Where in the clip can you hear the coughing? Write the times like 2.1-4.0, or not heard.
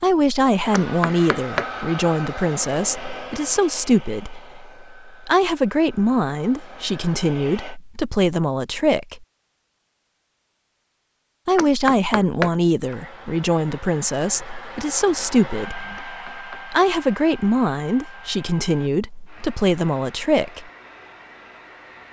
not heard.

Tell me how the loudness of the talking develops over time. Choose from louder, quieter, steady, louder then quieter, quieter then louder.
steady.